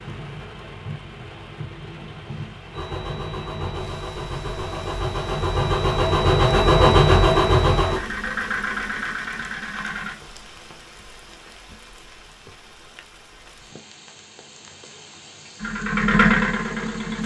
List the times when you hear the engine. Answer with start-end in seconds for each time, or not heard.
2.7-10.2, 15.6-17.2.